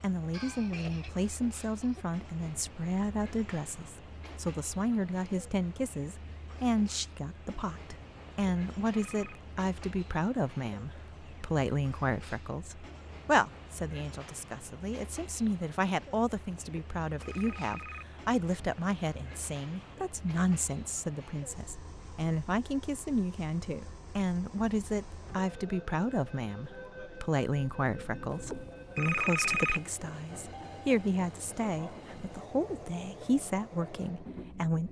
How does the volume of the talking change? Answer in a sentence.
The volume of the talking stays about the same.